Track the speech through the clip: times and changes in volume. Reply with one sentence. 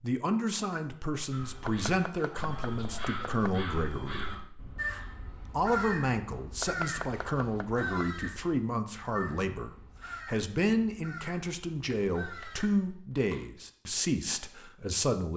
The speech can be heard from 0.0 to 15.3 s, at a steady volume.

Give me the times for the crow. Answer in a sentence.
You can hear the crow from 1.3 to 13.2 s.